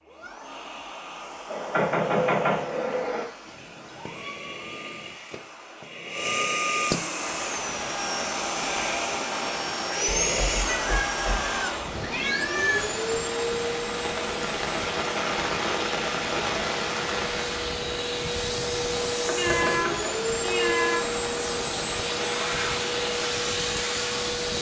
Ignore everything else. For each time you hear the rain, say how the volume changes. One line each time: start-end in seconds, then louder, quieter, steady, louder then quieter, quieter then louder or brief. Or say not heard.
7.0-24.5 louder then quieter.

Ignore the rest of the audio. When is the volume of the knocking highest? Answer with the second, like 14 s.
2 s.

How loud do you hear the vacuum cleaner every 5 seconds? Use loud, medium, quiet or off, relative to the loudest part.
quiet, loud, loud, loud, loud.